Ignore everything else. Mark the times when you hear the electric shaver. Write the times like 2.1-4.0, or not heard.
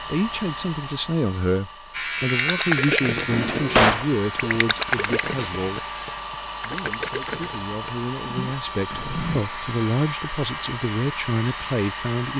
1.9-6.2, 9.2-12.3.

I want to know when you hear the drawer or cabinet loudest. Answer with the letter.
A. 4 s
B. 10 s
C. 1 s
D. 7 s
A.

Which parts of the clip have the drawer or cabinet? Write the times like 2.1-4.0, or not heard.
3.2-4.0, 8.9-9.4.